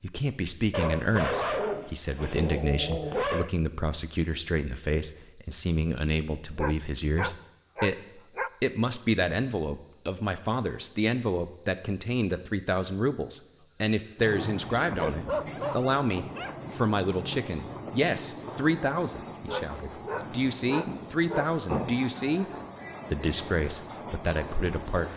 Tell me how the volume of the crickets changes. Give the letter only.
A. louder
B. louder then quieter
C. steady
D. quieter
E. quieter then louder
A.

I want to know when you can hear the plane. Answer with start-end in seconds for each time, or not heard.
not heard.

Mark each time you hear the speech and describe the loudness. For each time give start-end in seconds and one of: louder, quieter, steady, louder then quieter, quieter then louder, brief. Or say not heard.
0.0-22.4 steady
23.1-25.1 brief.